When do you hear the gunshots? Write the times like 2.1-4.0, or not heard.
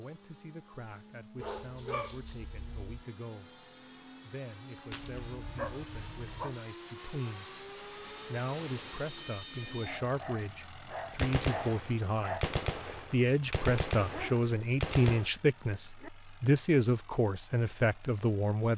11.2-15.3.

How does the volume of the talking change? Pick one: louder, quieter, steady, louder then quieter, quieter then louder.
louder.